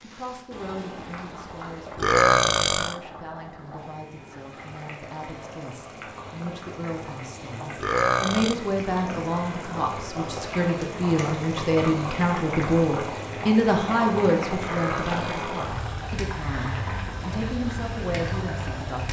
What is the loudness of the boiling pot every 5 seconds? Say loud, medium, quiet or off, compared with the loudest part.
medium, medium, loud, loud.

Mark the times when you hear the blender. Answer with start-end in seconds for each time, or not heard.
not heard.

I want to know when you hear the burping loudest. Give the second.
2 s.